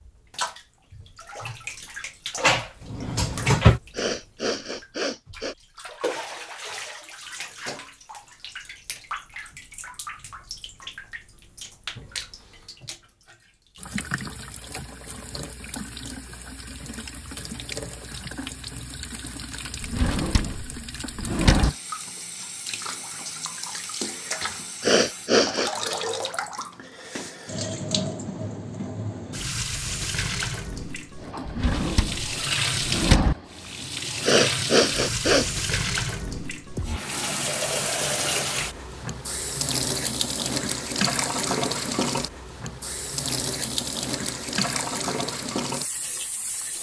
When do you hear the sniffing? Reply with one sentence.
The sniffing can be heard from 3.9 to 5.5 s, from 24.8 to 25.7 s and from 34.2 to 35.8 s.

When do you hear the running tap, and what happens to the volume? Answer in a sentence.
The running tap can be heard from 0.0 to 46.7 s, getting louder.